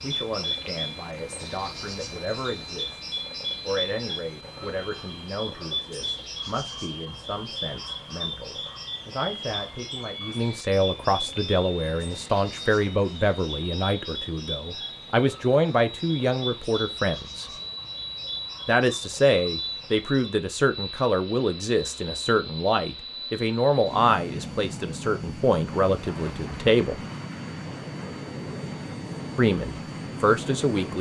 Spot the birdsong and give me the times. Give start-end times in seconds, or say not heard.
0.0-20.4.